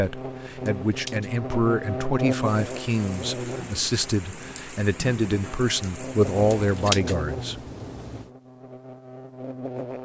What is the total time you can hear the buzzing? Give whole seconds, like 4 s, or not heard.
10 s.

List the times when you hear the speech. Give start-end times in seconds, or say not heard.
0.0-7.6.